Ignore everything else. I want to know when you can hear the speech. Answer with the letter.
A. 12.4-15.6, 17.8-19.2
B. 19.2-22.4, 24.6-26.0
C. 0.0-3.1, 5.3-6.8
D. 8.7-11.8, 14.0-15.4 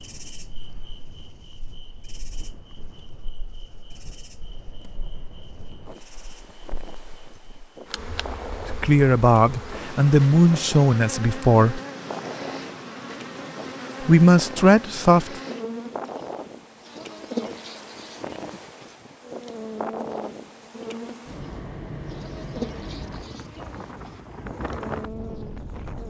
D.